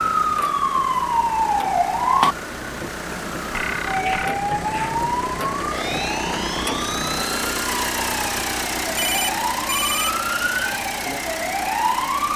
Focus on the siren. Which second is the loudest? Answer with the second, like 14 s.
2 s.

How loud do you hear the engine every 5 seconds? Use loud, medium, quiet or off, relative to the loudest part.
medium, loud, loud.